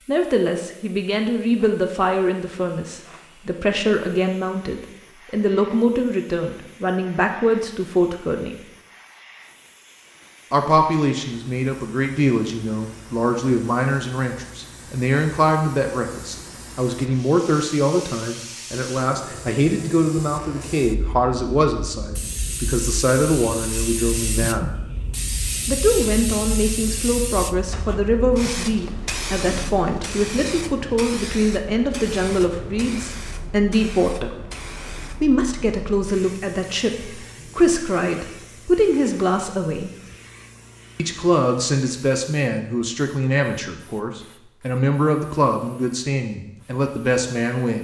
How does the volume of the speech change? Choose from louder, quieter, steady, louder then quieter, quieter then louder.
steady.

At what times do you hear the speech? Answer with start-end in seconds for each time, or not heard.
0.1-8.6, 10.5-24.8, 25.6-34.4, 35.1-40.0, 41.0-47.8.